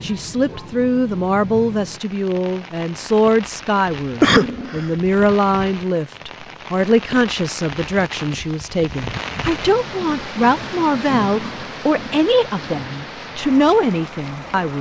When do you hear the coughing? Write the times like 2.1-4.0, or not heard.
4.2-4.8.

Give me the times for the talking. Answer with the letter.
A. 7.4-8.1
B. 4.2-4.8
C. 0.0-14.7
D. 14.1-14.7
C.